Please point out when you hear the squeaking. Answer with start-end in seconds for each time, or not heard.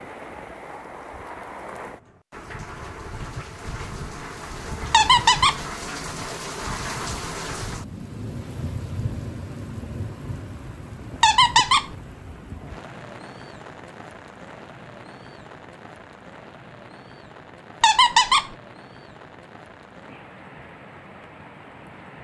4.9-5.6, 11.2-11.8, 17.8-18.5.